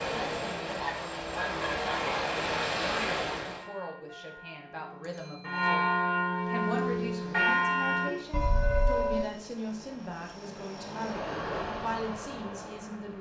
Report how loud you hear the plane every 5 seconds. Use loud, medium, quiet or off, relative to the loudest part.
loud, quiet, medium.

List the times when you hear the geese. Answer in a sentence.
The geese can be heard from 0.8 to 2.2 s.